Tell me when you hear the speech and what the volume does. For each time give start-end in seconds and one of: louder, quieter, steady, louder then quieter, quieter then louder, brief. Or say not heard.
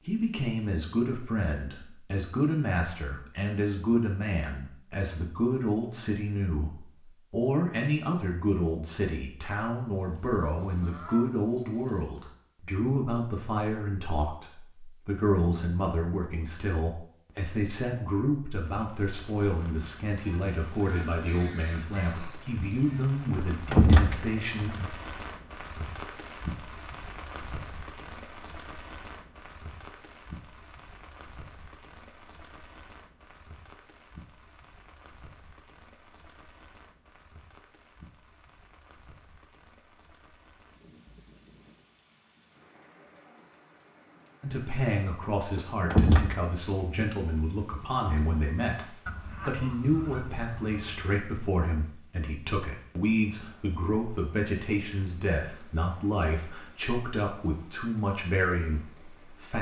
0.0-24.7 steady
44.4-59.5 steady.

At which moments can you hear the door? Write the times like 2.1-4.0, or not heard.
23.4-24.9, 45.5-47.1.